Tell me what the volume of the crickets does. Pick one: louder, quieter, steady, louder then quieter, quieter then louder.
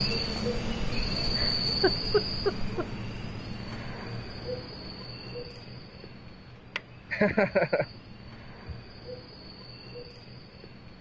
quieter.